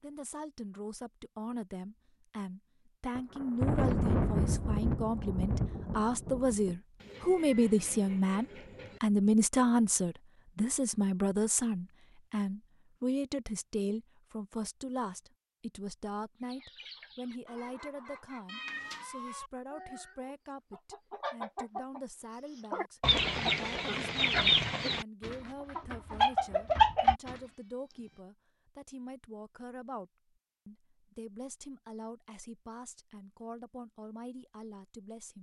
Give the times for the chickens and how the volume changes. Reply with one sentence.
The chickens can be heard from 16.4 to 27.4 s, getting louder.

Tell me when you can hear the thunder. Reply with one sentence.
The thunder can be heard from 3.1 to 6.8 s.